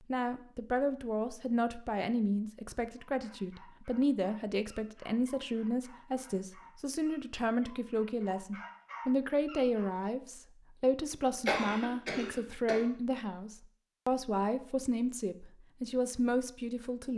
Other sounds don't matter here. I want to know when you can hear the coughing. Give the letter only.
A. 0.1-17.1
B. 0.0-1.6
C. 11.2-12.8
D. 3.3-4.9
C.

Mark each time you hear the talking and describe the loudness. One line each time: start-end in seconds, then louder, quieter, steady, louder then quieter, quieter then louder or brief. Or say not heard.
0.1-17.1 steady.